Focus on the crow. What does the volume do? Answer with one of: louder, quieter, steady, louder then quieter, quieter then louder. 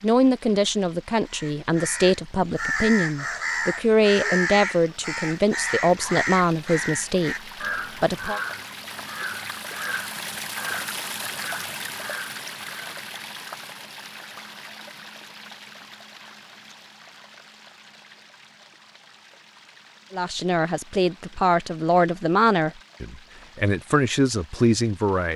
quieter.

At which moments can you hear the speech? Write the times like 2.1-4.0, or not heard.
0.0-7.3, 8.0-8.4, 20.1-25.3.